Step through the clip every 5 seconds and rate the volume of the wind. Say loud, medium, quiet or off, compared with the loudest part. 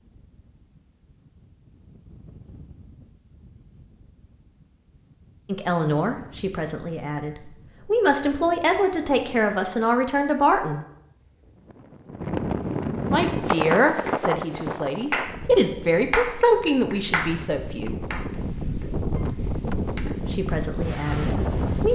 quiet, quiet, loud, medium, loud.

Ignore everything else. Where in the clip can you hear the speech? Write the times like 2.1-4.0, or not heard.
5.5-10.8, 13.1-18.0, 20.1-21.9.